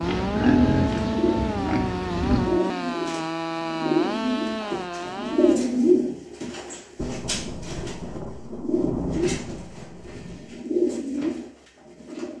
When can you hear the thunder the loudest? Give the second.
9 s.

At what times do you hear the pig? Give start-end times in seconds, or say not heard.
0.0-2.6.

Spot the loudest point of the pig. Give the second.
1 s.